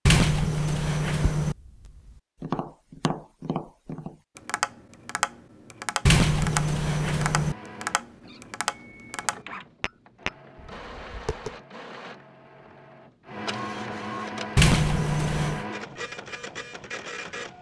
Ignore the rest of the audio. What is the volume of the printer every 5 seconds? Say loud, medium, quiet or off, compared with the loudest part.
off, medium, loud, loud.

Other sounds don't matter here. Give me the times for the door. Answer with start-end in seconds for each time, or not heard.
0.1-1.6, 6.0-7.5, 14.6-15.7.